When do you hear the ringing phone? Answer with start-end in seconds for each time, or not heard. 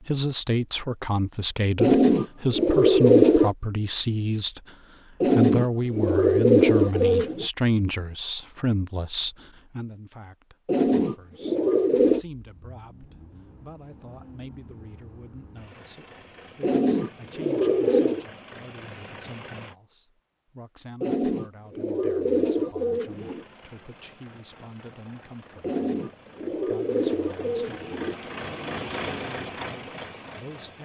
not heard.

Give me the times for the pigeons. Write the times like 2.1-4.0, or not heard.
1.8-3.5, 5.2-7.5, 10.7-12.2, 16.6-18.2, 21.0-23.4, 25.6-28.1.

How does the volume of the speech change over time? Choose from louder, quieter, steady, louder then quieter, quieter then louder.
quieter.